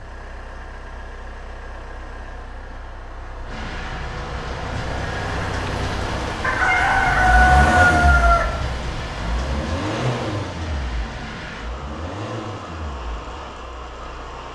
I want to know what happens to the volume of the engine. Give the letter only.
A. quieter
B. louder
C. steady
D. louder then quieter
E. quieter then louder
D.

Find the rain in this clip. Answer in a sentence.
You can hear the rain from 3.5 to 14.5 s.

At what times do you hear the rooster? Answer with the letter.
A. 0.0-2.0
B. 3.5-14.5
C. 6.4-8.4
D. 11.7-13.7
C.